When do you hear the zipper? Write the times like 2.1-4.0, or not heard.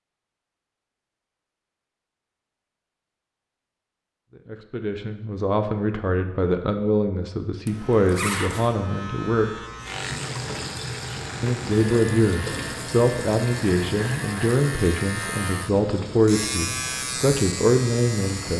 7.7-8.7.